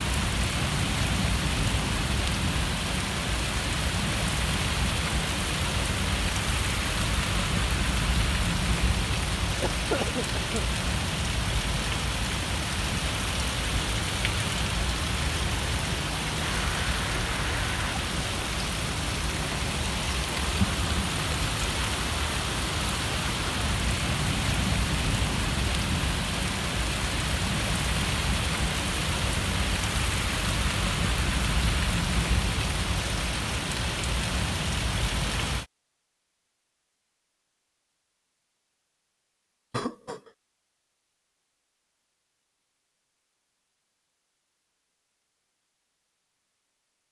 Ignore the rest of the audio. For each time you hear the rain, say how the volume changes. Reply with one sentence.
The rain can be heard from 0.0 to 35.6 s, at a steady volume.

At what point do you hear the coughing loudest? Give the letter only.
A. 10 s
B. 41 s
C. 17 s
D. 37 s
A.